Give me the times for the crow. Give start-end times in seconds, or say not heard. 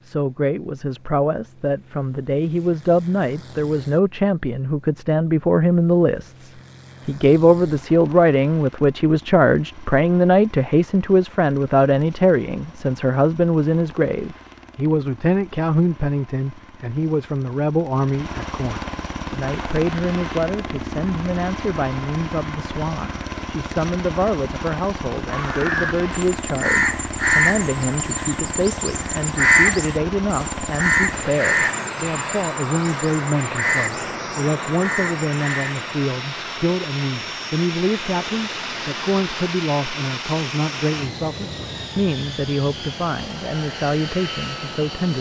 25.2-35.9.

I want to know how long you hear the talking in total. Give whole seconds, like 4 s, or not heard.
45 s.